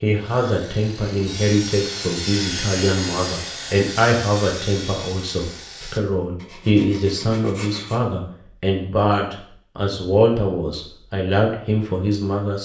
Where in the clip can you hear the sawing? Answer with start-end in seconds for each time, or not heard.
0.1-8.1.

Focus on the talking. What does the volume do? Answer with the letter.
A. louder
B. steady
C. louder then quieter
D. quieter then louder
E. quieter
B.